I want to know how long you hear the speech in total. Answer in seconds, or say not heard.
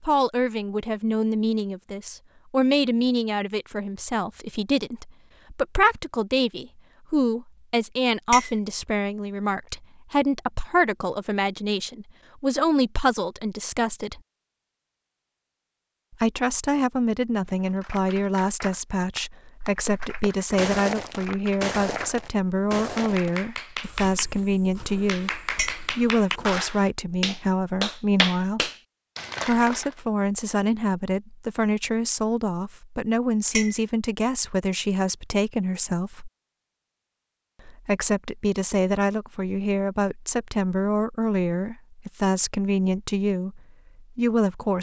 41 s.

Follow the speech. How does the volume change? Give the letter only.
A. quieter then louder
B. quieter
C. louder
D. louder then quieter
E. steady
E.